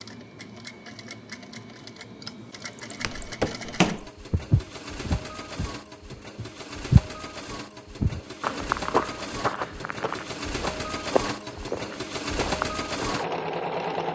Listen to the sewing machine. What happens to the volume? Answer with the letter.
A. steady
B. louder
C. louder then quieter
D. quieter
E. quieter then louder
B.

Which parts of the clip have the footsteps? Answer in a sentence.
The footsteps can be heard from 3.0 to 13.4 s.